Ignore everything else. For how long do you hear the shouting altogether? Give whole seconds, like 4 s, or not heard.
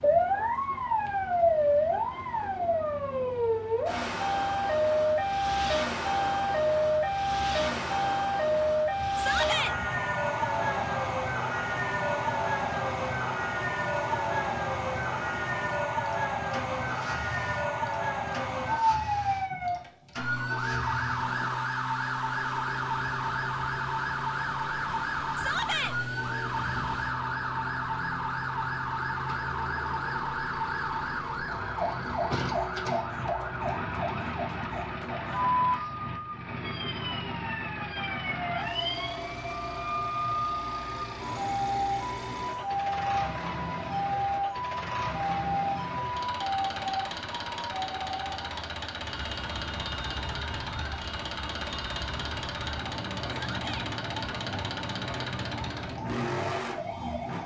2 s.